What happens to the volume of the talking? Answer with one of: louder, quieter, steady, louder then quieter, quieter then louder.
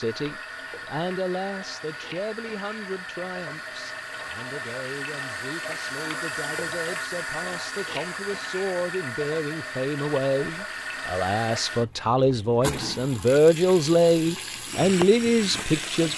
quieter then louder.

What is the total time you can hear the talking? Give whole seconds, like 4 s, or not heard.
16 s.